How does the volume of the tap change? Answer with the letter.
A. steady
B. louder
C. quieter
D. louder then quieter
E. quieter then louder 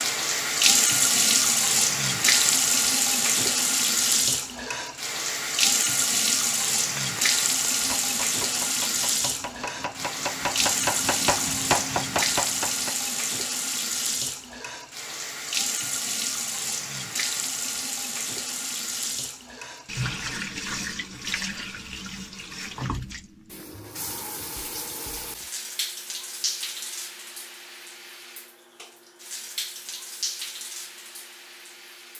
C.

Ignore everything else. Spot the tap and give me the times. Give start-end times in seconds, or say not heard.
0.0-32.1.